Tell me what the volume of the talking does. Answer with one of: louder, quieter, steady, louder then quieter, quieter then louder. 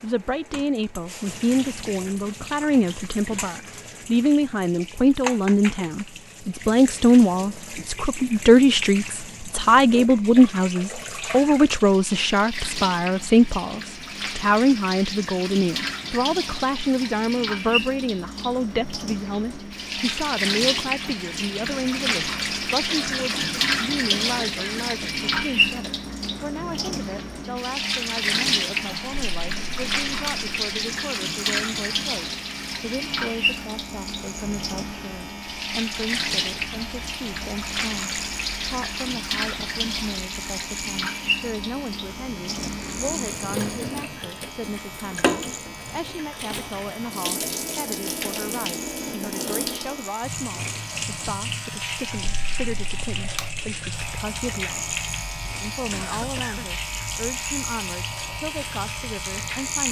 quieter.